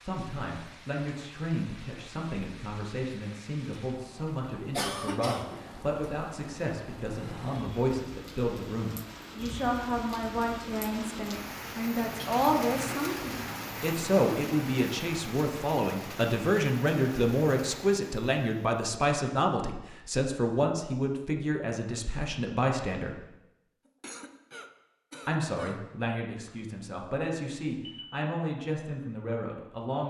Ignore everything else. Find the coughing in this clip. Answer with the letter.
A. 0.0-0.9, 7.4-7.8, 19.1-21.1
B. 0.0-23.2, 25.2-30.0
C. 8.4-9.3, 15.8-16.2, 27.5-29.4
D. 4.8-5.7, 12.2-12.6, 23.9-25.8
D.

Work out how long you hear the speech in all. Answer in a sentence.
You can hear the speech for 28 seconds altogether.